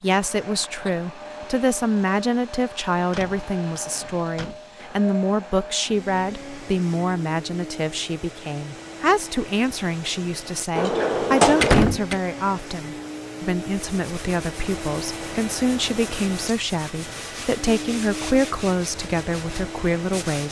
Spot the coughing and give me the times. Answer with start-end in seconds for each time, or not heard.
not heard.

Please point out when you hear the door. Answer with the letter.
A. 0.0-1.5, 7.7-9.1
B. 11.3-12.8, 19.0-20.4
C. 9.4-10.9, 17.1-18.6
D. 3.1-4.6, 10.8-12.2
D.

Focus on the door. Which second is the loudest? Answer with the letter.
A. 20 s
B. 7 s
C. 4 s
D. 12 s
D.